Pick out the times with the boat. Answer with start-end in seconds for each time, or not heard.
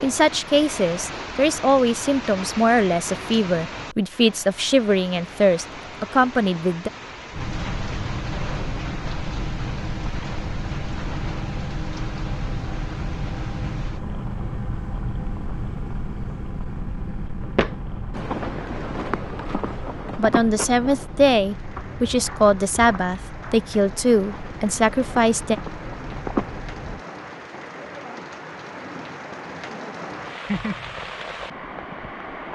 7.3-27.1.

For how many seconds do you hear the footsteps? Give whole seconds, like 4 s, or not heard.
9 s.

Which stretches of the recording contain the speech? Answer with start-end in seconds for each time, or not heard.
0.0-6.9, 20.1-25.6.